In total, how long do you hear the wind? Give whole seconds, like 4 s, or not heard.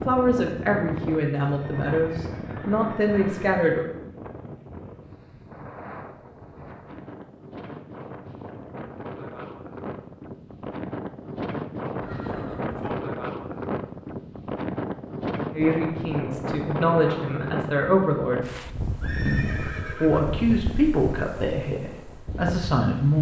23 s.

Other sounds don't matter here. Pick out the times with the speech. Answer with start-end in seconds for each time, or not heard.
0.1-3.9, 15.5-18.4, 19.2-23.1.